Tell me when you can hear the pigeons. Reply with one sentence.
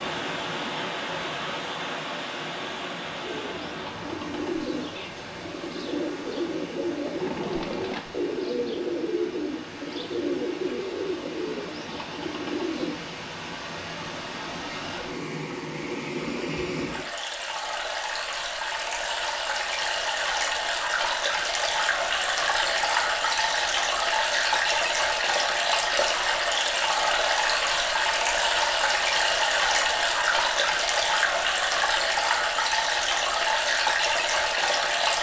You can hear the pigeons from 3.2 to 12.9 s.